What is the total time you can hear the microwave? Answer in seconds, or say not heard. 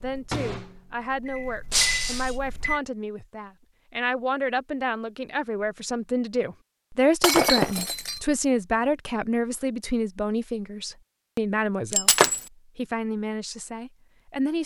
3 s.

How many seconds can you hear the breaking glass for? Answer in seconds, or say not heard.
2 s.